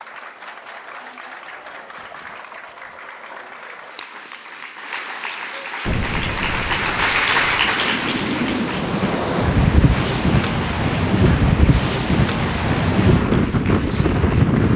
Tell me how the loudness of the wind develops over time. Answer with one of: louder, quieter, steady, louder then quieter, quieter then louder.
louder.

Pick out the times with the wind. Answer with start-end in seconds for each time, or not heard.
5.8-14.7.